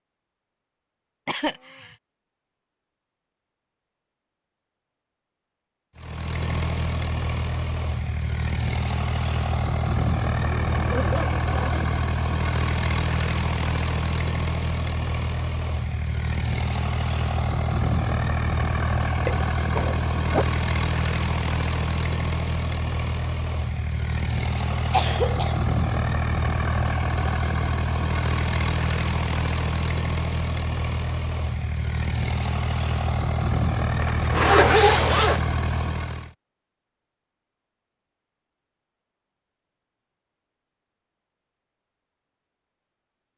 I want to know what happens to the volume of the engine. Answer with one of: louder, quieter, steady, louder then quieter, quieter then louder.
steady.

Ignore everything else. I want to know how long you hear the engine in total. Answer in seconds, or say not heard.
30 s.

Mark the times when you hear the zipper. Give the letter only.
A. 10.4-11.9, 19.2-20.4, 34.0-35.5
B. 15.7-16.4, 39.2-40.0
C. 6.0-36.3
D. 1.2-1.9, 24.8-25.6
A.